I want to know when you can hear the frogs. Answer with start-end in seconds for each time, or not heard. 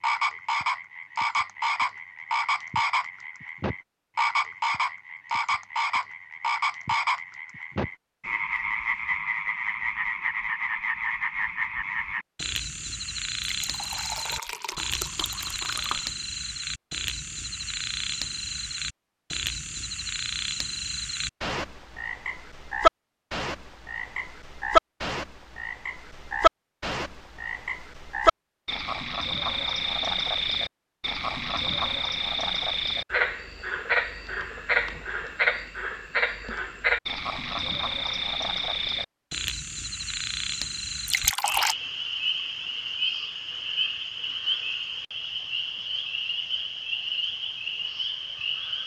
0.0-48.8.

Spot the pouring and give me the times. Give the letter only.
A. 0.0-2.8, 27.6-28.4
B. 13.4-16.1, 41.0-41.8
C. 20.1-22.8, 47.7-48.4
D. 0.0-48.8
B.